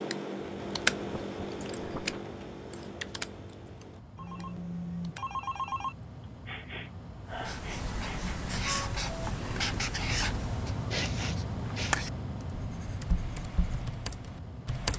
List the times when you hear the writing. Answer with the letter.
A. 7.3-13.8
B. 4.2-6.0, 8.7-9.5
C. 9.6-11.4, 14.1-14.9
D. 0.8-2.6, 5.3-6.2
A.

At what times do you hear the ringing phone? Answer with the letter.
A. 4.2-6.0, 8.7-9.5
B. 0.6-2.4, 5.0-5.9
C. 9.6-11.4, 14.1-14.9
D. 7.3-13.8
A.